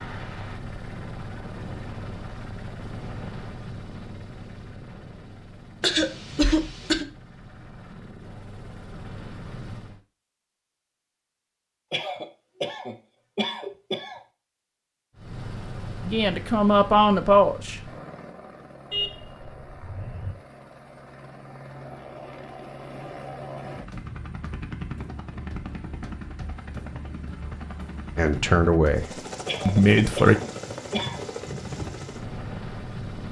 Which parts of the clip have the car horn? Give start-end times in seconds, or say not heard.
18.9-20.4.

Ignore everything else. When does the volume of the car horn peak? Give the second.
19 s.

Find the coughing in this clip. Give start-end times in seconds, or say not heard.
5.8-7.0, 11.9-14.2, 29.4-31.2.